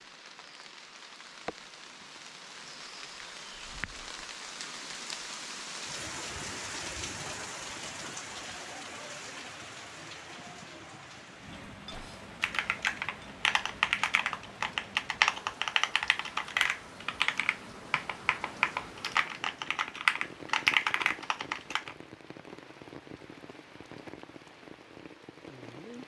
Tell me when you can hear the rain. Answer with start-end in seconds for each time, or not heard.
0.0-26.0.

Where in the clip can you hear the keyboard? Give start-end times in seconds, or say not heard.
11.9-21.9.